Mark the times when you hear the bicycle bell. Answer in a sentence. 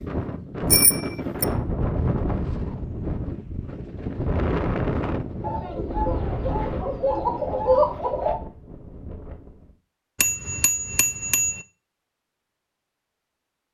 The bicycle bell can be heard from 0.7 to 1.4 s and from 10.2 to 11.6 s.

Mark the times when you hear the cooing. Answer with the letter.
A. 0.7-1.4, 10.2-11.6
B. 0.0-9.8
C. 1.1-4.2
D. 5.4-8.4
D.